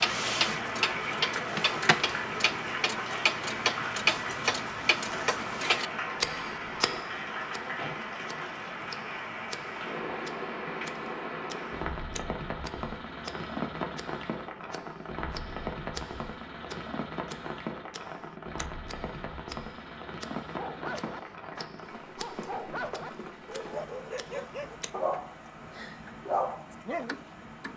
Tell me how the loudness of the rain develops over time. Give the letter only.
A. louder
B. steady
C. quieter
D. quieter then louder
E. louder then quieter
C.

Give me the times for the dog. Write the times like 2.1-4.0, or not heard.
20.4-27.1.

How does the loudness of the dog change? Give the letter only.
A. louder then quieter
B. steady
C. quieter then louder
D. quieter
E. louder
E.